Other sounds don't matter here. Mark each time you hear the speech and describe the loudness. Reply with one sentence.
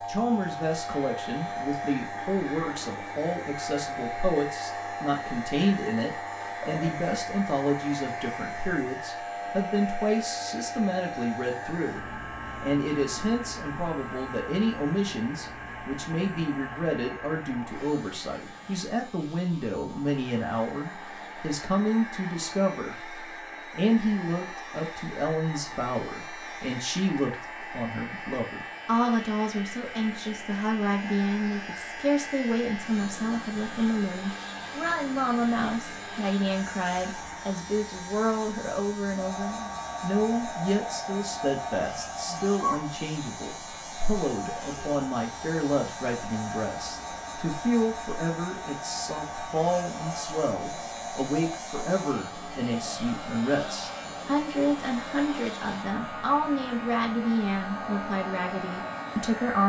The speech can be heard from 0.1 to 59.6 s, at a steady volume.